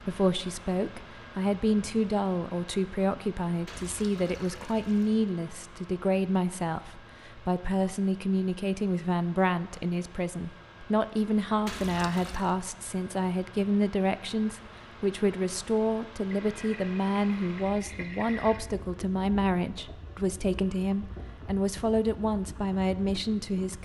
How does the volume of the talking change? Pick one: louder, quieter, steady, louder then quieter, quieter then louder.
steady.